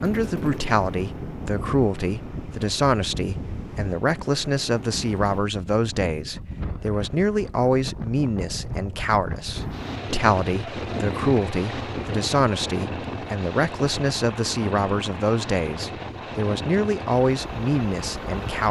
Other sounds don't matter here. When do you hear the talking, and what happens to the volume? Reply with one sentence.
The talking can be heard from 0.0 to 18.6 s, at a steady volume.